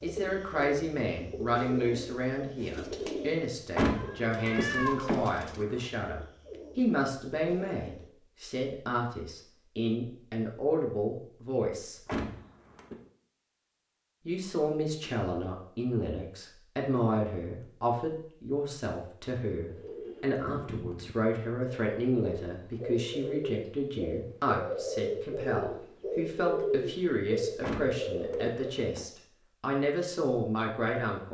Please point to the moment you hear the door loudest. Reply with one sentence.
The volume of the door peaks at 4 seconds.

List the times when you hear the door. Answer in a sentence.
The door can be heard from 3.8 to 5.8 s, from 12.1 to 13.0 s and from 27.6 to 29.1 s.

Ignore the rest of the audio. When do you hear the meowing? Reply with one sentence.
The meowing can be heard from 3.9 to 5.2 s.